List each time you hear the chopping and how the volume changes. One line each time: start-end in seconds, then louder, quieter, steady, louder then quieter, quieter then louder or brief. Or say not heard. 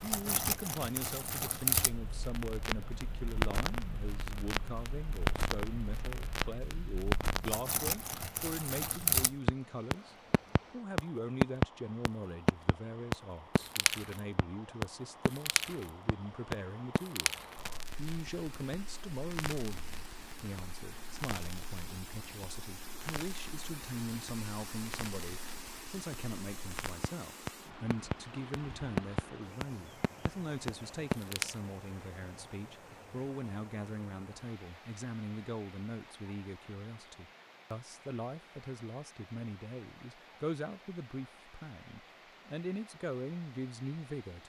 not heard.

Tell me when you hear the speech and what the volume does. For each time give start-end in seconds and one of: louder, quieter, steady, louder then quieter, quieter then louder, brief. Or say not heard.
0.0-44.4 steady.